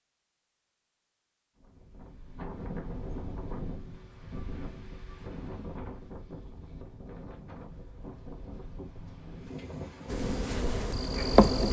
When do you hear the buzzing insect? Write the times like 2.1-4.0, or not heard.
10.1-11.6.